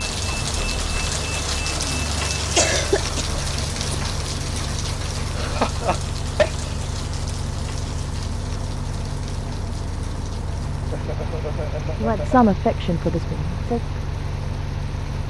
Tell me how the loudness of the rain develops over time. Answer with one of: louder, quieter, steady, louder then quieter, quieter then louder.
quieter.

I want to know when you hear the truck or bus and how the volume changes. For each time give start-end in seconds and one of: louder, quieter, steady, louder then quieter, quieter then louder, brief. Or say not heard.
0.0-15.2 steady.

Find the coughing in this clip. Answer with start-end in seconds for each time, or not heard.
2.5-3.4, 5.3-6.7, 10.9-12.2.